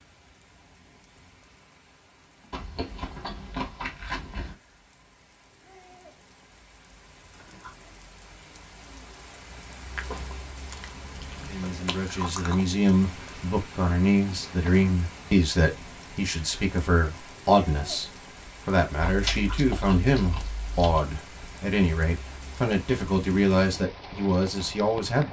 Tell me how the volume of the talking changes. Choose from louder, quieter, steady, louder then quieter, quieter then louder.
steady.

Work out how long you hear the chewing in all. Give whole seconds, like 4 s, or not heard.
7 s.